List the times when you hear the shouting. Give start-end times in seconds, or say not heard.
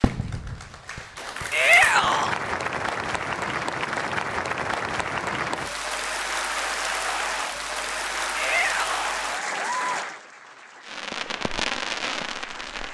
1.5-2.4, 8.3-9.2.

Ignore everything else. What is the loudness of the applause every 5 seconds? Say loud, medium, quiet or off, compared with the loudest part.
loud, loud, quiet.